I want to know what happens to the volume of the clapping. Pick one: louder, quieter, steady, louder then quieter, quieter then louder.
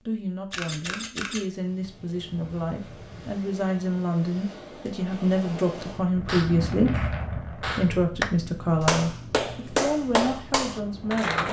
louder.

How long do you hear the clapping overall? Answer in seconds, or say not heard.
5 s.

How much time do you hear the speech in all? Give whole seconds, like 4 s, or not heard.
11 s.